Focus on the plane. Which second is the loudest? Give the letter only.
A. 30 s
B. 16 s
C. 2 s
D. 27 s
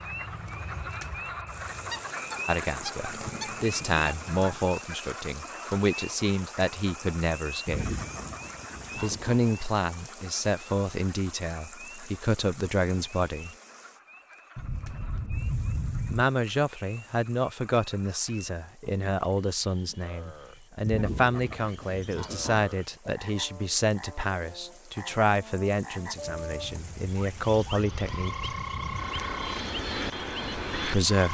A.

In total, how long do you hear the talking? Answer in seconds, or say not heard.
23 s.